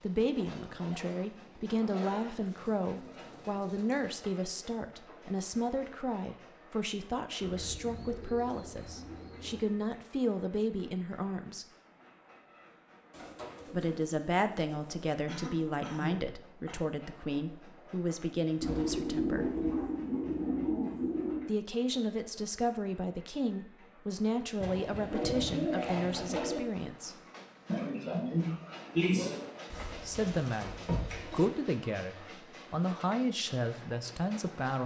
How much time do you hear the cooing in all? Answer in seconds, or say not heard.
13 s.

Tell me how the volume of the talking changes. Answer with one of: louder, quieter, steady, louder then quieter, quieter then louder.
steady.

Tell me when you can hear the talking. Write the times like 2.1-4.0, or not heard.
0.0-11.7, 13.7-19.6, 21.4-27.1, 30.0-34.8.